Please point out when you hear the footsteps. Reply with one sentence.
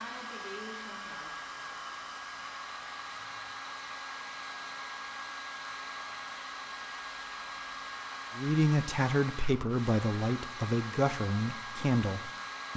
You can't hear the footsteps here.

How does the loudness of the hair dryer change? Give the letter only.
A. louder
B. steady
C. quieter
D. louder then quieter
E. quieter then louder
B.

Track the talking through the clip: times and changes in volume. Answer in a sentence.
You can hear the talking from 8.3 to 12.7 s, at a steady volume.